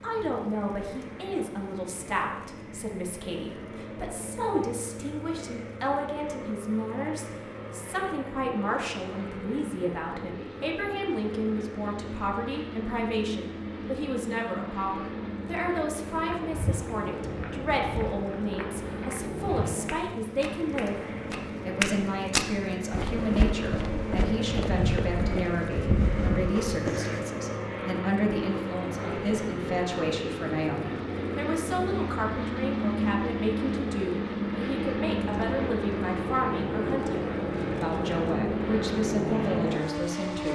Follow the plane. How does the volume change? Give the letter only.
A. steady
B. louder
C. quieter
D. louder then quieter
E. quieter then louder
B.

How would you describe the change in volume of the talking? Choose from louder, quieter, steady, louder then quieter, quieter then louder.
steady.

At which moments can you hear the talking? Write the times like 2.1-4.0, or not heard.
0.0-40.5.